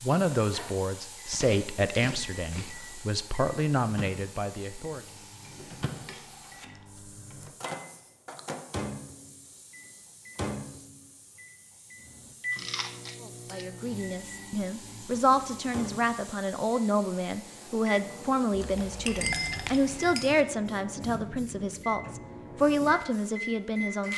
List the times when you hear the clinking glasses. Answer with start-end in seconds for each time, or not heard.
5.4-6.2, 13.4-13.9, 18.6-20.4.